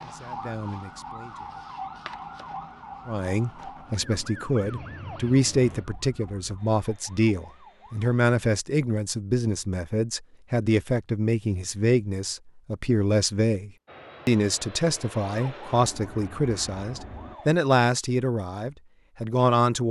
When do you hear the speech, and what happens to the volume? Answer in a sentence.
You can hear the speech briefly from 0.0 to 1.6 s; and from 3.0 to 19.8 s, at a steady volume.